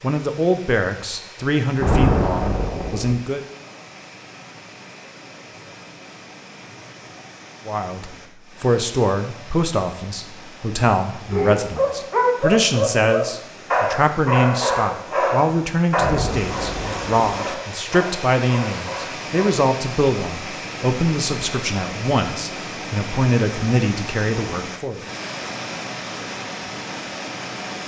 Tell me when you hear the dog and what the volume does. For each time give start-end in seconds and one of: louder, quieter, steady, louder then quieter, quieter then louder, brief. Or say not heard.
11.2-19.5 quieter.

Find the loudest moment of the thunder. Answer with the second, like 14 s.
2 s.